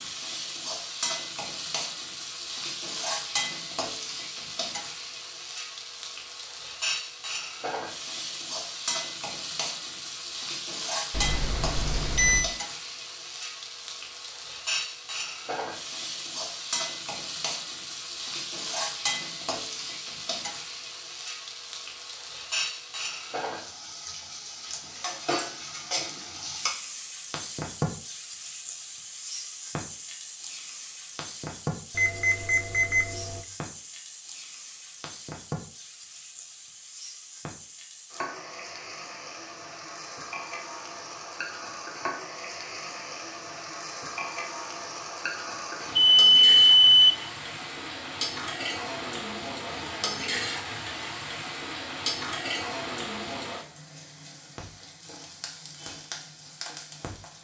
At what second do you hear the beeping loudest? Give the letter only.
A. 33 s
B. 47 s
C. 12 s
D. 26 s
B.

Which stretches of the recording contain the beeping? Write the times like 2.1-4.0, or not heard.
11.1-12.5, 31.9-33.5, 46.0-47.2.